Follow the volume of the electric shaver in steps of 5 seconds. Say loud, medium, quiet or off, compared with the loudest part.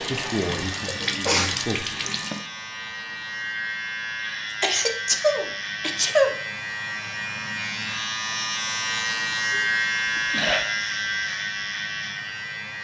medium, loud, loud.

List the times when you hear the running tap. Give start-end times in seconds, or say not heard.
0.0-2.5.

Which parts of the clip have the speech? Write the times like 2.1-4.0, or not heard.
0.0-2.0.